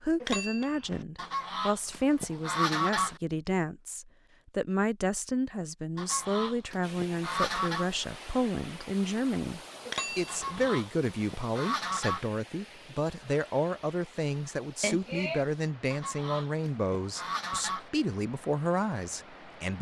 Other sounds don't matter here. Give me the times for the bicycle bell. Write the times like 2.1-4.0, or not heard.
0.2-1.1, 9.8-10.7, 14.8-15.4.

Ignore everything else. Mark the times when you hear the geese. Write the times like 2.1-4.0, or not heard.
1.1-3.2, 6.0-7.9, 10.2-12.3, 15.9-17.9.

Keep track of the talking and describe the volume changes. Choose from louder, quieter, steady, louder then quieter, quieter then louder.
steady.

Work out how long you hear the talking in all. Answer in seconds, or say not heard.
20 s.